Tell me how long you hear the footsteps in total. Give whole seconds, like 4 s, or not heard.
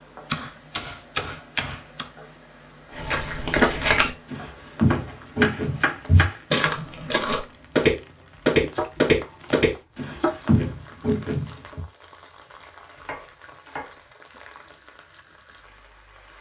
9 s.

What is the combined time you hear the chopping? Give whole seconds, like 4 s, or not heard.
7 s.